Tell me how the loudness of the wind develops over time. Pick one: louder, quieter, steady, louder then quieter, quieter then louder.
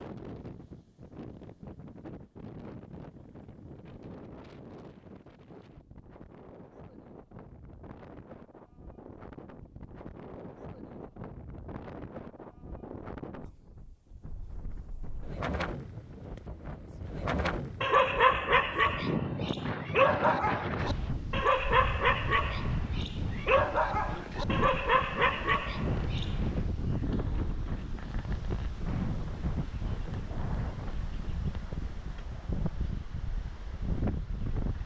louder.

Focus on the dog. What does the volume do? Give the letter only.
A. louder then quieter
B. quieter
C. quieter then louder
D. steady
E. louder
D.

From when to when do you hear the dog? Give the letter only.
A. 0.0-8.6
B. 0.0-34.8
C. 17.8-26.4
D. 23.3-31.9
C.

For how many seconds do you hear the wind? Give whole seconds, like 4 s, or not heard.
35 s.